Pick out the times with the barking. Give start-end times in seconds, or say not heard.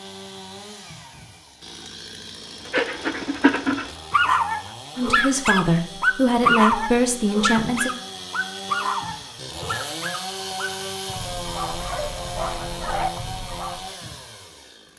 2.6-13.8.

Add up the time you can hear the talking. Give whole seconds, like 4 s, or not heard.
3 s.